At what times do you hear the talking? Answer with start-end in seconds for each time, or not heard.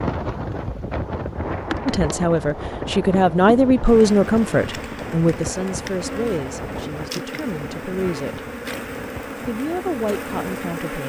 1.9-8.4, 9.4-11.0.